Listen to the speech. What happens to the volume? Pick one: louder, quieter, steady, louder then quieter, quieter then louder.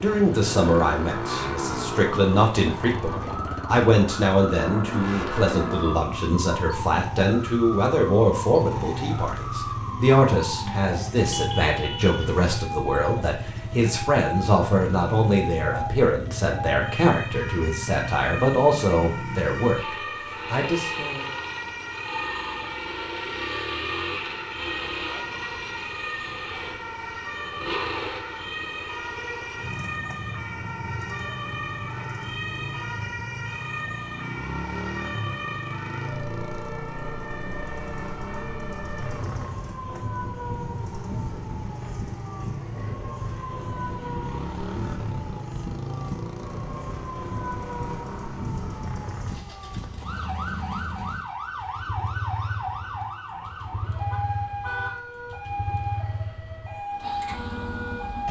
steady.